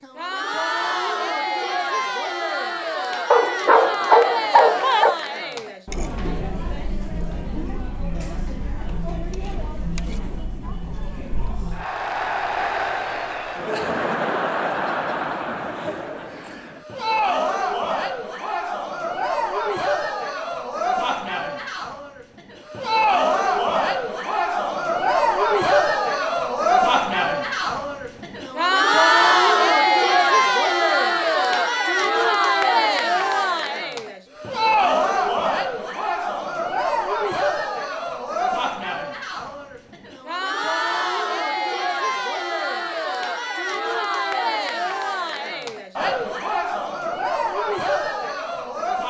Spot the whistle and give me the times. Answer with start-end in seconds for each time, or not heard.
not heard.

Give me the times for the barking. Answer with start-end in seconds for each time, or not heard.
3.3-5.2.